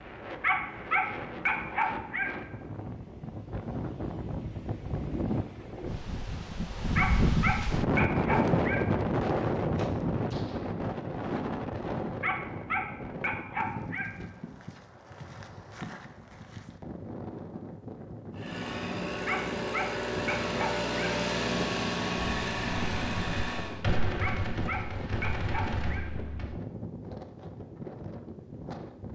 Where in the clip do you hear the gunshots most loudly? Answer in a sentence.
The volume of the gunshots peaks at 24 seconds.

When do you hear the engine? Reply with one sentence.
The engine can be heard from 18.3 to 23.8 s.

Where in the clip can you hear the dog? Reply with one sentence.
The dog can be heard from 0.4 to 2.3 s, from 7.0 to 8.8 s, from 12.2 to 14.1 s, from 19.2 to 21.1 s and from 24.2 to 26.1 s.